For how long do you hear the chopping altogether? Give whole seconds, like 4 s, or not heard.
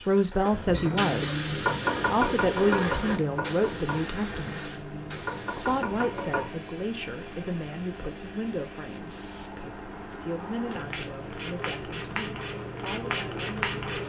6 s.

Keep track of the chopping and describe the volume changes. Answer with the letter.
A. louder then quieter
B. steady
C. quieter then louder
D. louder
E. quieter
C.